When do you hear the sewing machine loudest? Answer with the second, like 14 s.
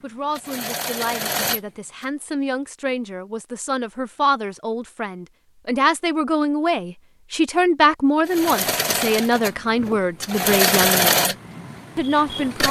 11 s.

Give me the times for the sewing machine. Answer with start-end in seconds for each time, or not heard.
0.3-2.0, 8.2-12.6.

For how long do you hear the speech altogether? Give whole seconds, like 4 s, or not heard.
12 s.